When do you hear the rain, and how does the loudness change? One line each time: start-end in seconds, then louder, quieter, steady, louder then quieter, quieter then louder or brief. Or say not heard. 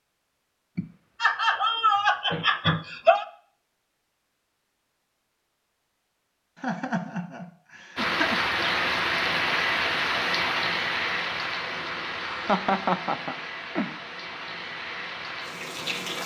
8.0-16.2 quieter.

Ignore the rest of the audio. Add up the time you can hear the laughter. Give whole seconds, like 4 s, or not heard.
6 s.